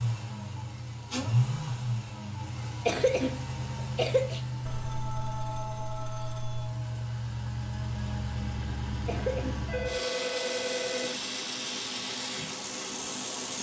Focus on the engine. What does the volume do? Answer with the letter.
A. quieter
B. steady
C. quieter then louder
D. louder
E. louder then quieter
B.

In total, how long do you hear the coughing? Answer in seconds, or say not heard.
2 s.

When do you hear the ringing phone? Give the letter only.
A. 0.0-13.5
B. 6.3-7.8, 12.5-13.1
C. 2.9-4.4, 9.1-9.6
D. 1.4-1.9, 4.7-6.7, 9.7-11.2
D.